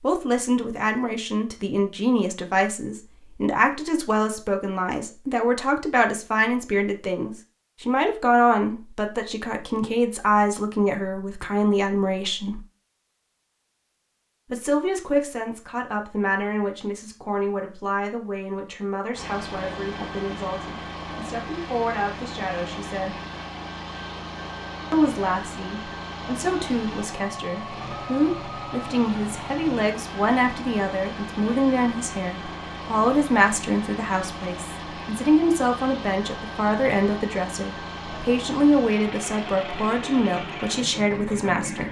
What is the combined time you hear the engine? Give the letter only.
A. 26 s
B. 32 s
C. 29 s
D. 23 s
D.